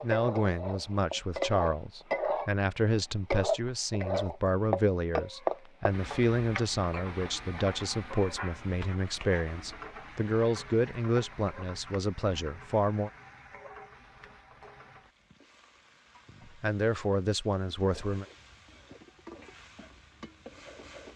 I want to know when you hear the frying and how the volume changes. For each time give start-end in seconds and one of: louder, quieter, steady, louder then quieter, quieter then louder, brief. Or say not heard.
0.0-21.1 quieter.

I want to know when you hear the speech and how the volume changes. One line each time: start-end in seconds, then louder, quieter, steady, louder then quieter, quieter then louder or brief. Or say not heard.
0.0-13.1 steady
16.6-18.2 brief.